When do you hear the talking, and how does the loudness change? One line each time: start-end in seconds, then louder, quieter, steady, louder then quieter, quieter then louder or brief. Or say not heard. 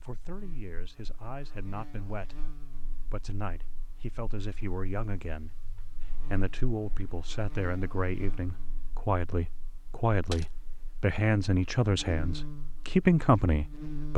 0.0-14.1 louder.